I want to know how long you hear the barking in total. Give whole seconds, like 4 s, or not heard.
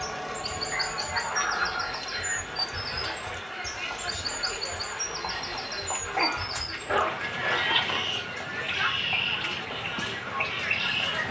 4 s.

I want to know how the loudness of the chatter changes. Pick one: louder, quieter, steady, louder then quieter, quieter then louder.
steady.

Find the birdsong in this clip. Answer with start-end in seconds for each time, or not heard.
0.0-11.2.